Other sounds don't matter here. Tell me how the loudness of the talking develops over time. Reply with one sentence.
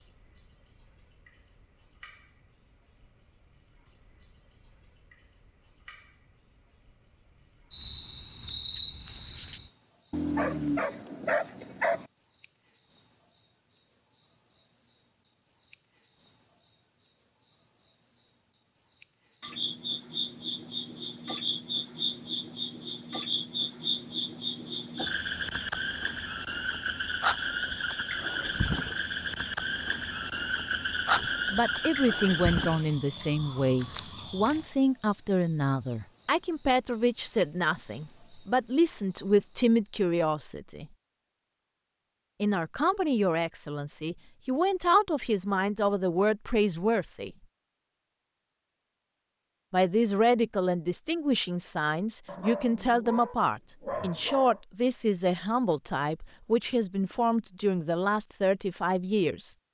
The volume of the talking stays about the same.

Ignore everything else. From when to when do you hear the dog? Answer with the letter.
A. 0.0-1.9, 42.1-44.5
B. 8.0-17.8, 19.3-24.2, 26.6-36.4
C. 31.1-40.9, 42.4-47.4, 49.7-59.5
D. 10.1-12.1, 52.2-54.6
D.